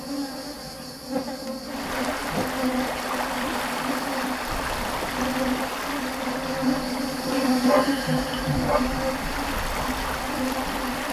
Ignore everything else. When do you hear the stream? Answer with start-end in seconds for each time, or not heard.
1.6-11.0.